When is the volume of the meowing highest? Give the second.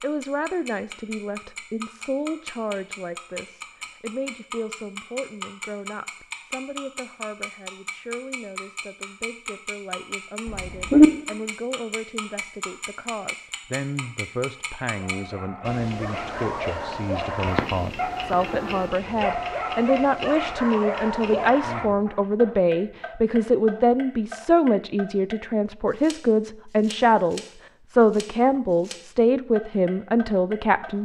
11 s.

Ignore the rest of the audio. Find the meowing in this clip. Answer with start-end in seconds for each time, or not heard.
10.4-11.1, 17.4-18.8.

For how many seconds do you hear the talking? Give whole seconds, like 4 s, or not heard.
31 s.